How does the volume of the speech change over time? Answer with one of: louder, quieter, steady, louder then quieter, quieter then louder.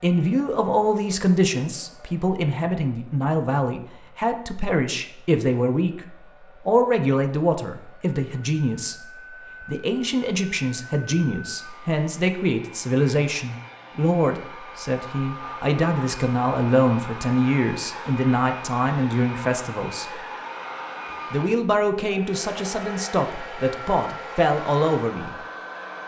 steady.